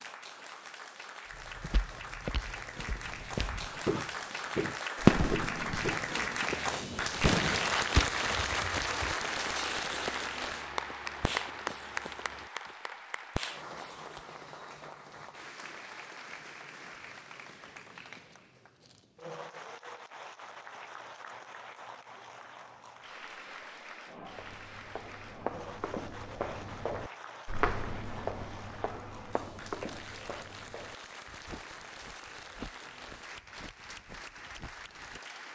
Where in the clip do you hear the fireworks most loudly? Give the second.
5 s.